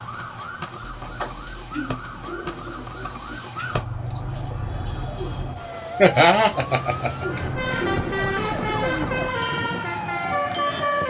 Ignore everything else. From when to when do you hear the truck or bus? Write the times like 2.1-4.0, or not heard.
7.2-11.0.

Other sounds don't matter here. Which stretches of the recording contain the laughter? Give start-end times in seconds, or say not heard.
6.0-7.4.